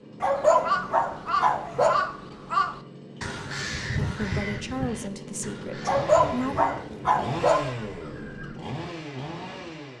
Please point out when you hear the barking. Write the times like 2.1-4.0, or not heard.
0.2-2.0, 5.8-7.7.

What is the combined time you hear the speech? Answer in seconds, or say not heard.
3 s.